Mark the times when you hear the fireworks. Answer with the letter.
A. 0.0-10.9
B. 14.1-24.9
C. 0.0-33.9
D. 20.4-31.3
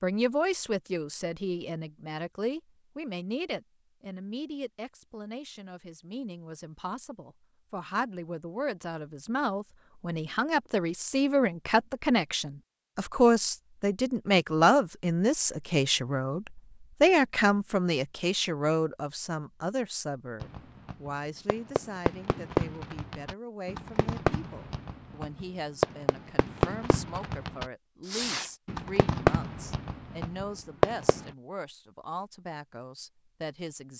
D.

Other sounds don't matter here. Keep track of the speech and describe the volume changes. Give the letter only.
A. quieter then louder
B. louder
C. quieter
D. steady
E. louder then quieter
E.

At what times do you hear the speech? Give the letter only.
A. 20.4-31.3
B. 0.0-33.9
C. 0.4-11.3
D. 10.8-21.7
B.